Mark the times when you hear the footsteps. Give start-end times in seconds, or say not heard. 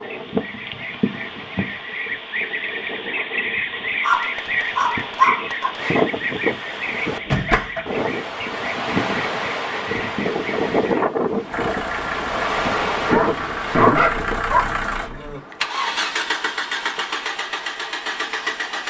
not heard.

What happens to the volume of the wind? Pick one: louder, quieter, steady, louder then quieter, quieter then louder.
louder.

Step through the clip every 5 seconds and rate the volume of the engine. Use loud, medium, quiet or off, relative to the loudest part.
off, off, loud, loud.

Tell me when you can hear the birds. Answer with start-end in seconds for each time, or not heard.
0.0-11.1.